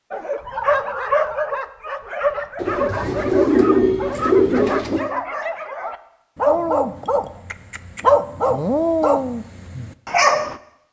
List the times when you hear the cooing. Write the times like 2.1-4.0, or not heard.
2.5-5.0.